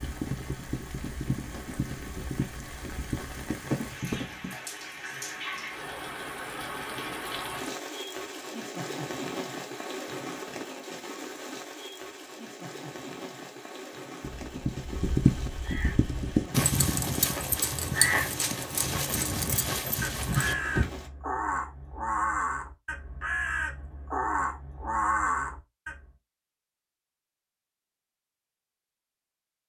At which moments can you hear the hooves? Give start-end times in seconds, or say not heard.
0.0-4.5, 14.2-20.9.